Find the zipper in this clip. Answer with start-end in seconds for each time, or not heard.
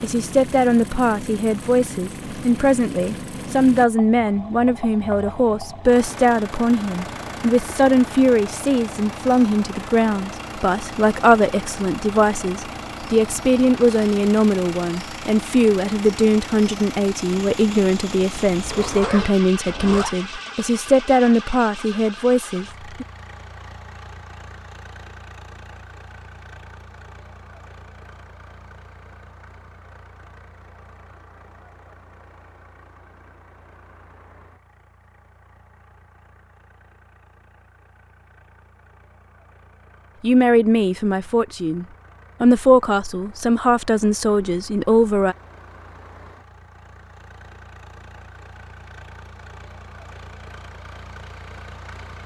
18.5-20.1.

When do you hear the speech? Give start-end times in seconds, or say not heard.
0.0-23.1, 40.2-45.4.